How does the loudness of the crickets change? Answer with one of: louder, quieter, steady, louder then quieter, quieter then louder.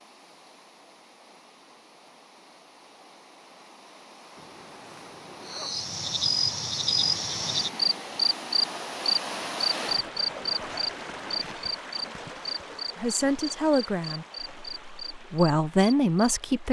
quieter.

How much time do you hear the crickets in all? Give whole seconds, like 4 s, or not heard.
11 s.